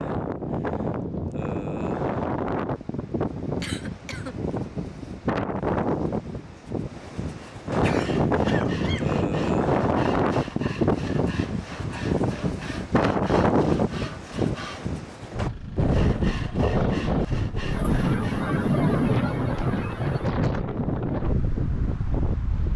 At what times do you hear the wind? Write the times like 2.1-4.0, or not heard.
0.0-22.7.